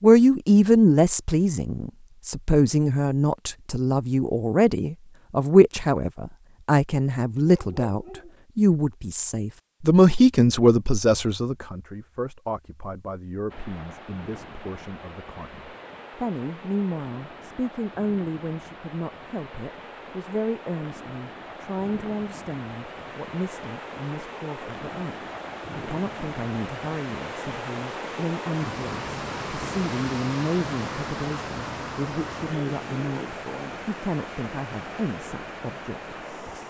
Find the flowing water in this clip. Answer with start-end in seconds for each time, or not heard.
13.4-36.6.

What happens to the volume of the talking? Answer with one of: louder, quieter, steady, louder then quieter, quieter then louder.
quieter.